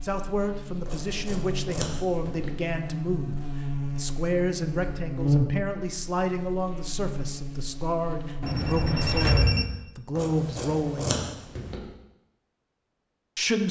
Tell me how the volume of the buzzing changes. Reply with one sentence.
The loudness of the buzzing goes up, then down.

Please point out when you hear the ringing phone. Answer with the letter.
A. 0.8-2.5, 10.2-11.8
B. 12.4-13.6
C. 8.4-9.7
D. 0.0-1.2
C.